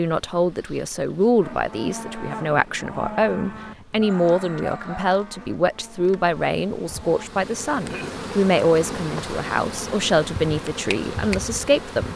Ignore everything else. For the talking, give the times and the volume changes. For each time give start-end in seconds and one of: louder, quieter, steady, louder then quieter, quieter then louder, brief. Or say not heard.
0.0-12.1 steady.